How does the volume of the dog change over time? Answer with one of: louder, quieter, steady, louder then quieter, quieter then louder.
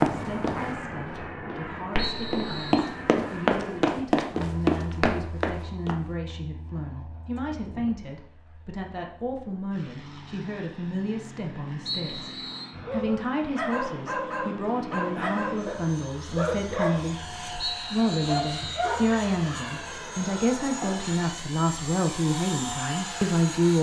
steady.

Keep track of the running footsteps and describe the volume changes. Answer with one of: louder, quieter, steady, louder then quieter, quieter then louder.
louder.